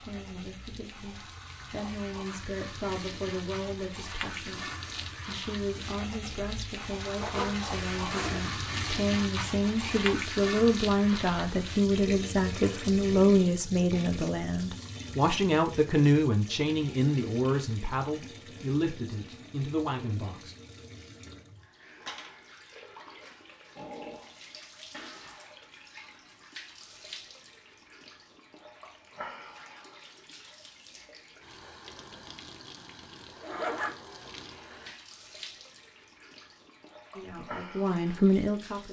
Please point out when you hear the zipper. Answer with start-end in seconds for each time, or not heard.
7.2-8.4, 33.4-34.9.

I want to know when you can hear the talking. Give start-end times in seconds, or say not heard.
0.0-20.6, 37.1-38.8.